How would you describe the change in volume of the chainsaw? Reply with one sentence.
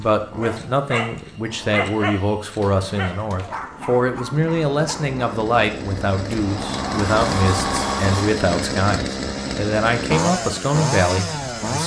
The loudness of the chainsaw goes up.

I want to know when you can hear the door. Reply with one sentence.
You can hear the door from 2.6 to 3.7 s and from 6.3 to 8.4 s.